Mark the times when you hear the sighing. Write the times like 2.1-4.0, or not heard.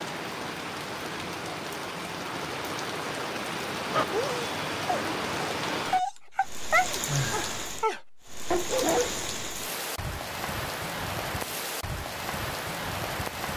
7.0-7.7.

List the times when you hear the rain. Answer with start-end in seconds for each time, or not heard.
0.0-13.5.